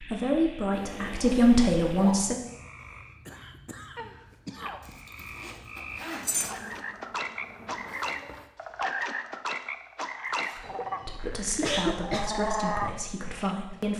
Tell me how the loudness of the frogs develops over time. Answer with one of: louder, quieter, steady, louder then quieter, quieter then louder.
louder.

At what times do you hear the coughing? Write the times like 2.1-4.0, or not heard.
2.8-4.8, 11.4-12.3.